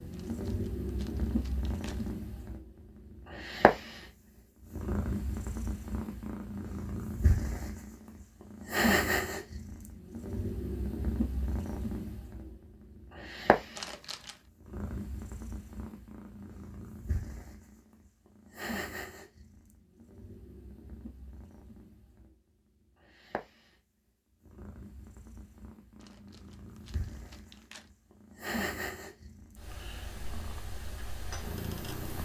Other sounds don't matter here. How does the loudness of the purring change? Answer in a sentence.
The loudness of the purring goes down, then up.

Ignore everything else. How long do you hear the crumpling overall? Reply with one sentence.
You can hear the crumpling for 5 seconds altogether.